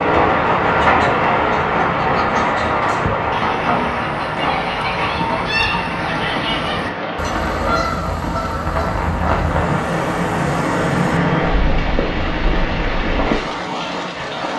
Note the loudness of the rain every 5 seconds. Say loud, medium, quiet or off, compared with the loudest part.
loud, medium, loud.